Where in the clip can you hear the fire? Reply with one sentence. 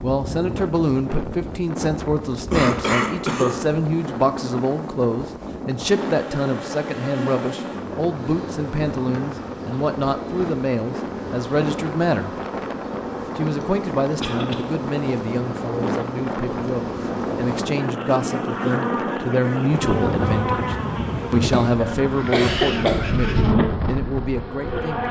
The fire can't be heard in this clip.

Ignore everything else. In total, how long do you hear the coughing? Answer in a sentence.
The coughing can be heard for 3 seconds in total.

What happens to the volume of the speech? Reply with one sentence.
The loudness of the speech stays about the same.